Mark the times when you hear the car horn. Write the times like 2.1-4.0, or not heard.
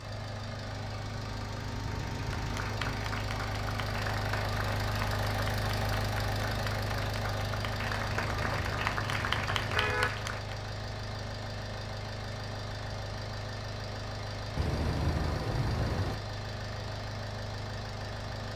1.9-3.0, 8.3-10.1, 14.6-16.2.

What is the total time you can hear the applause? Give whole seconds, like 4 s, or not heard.
8 s.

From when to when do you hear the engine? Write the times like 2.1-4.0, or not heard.
0.0-18.5.